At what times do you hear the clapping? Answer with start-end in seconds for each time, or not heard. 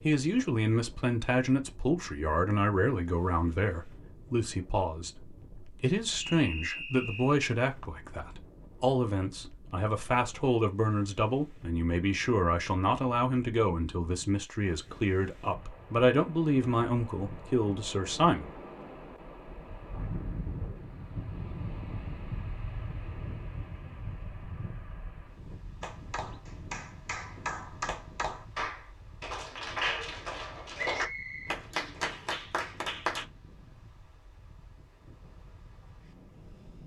25.8-33.2.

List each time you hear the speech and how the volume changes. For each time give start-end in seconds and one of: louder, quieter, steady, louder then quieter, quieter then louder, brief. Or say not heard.
0.0-18.5 steady.